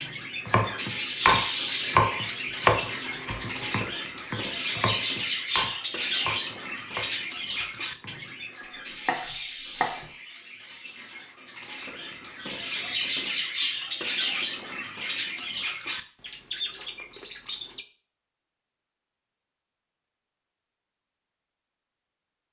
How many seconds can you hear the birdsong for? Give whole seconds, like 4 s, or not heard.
18 s.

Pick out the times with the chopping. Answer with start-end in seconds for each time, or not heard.
0.5-10.1.